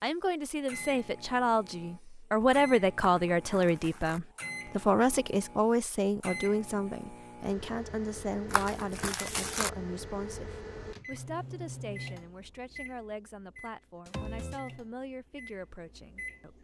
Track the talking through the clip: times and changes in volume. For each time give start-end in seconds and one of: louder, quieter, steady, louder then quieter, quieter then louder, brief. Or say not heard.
0.0-16.5 quieter.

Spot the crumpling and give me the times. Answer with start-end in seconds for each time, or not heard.
3.2-4.2, 8.5-9.7.